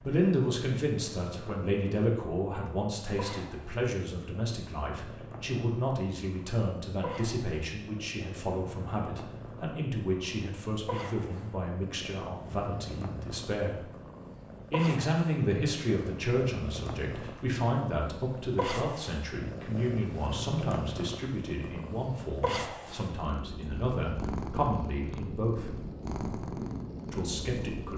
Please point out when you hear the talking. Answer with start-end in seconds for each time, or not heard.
0.0-13.8, 14.7-25.8, 27.1-27.9.